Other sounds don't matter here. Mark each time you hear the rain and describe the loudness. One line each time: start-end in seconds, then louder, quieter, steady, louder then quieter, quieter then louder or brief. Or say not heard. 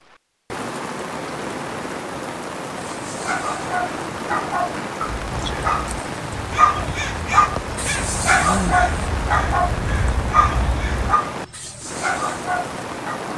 0.0-13.3 steady.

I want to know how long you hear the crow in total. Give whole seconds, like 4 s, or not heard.
6 s.